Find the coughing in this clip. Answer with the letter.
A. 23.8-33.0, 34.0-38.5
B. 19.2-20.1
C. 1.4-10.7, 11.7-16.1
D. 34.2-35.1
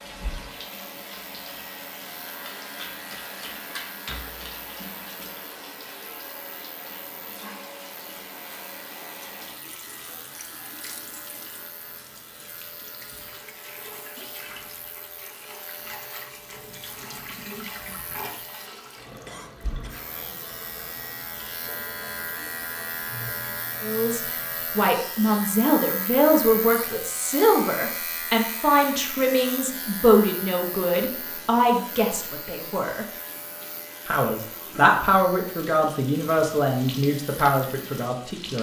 B.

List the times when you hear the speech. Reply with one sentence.
You can hear the speech from 23.8 to 33.0 s and from 34.0 to 38.5 s.